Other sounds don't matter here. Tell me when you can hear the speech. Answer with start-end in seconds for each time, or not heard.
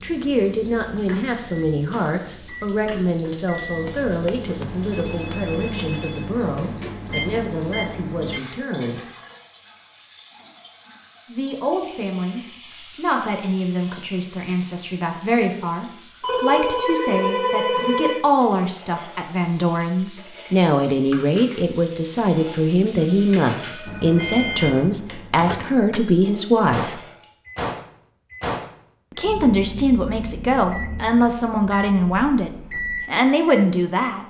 0.0-9.1, 11.2-27.0, 29.1-34.2.